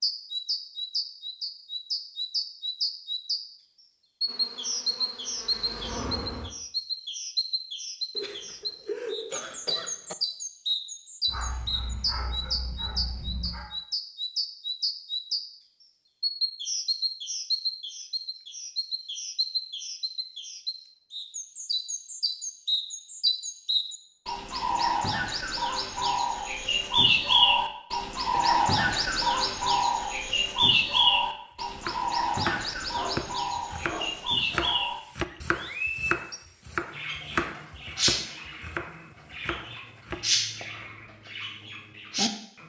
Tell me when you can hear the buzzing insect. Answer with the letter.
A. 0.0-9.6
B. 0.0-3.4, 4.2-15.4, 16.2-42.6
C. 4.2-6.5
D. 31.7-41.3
C.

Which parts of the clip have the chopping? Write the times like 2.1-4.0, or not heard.
31.7-41.3.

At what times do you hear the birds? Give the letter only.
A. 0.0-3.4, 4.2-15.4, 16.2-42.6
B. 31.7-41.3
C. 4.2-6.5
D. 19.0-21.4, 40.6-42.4
A.